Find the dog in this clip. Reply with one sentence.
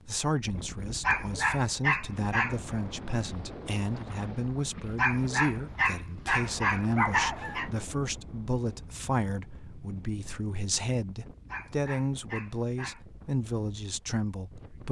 The dog can be heard from 1.0 to 2.5 s, from 5.0 to 7.7 s and from 11.5 to 13.0 s.